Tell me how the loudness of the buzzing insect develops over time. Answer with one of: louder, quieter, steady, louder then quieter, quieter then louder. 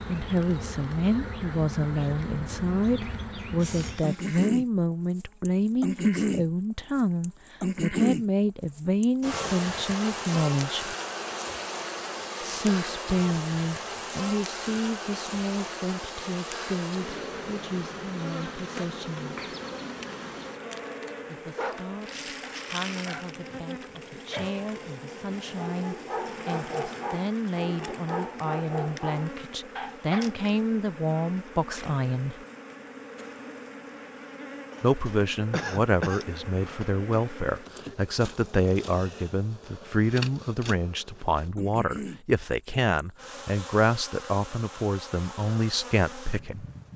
quieter.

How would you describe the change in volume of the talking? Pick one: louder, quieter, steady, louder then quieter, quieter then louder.
quieter then louder.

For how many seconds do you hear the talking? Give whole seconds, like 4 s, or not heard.
41 s.